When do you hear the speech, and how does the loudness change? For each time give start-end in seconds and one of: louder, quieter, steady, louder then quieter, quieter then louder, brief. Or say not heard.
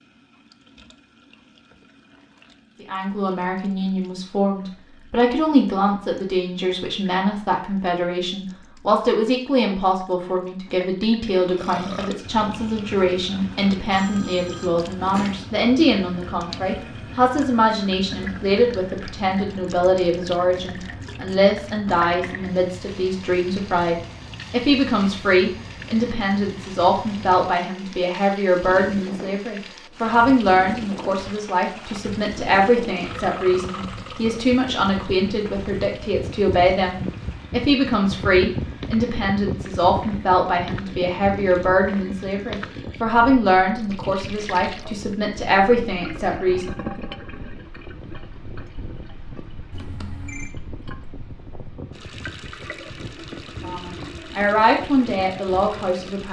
2.8-46.8 steady
53.6-56.2 brief.